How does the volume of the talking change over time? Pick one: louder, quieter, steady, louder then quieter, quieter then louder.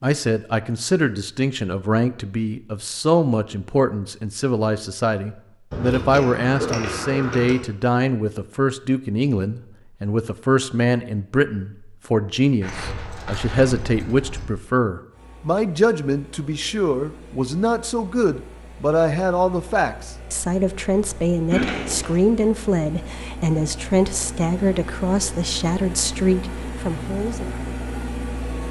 steady.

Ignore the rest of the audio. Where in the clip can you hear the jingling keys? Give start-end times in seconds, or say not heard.
5.7-7.5, 12.6-14.4, 21.5-22.2.